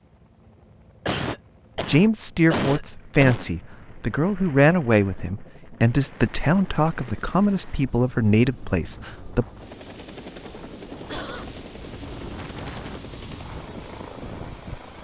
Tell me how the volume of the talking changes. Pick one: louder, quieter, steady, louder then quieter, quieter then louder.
steady.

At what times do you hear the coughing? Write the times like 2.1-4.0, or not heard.
1.1-3.5, 11.1-11.6.